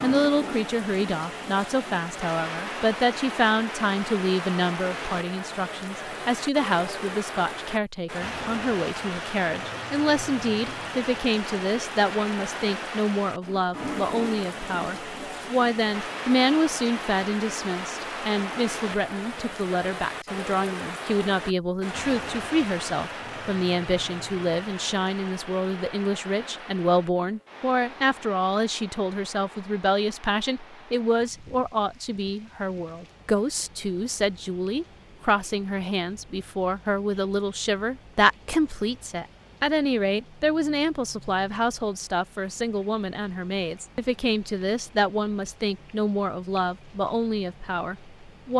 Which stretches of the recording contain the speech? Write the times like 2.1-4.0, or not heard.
0.0-48.5.